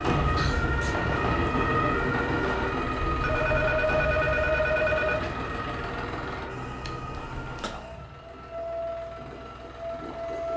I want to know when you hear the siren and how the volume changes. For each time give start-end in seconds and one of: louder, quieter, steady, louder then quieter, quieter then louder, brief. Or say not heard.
0.0-10.5 quieter.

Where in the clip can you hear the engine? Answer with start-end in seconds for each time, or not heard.
0.0-10.5.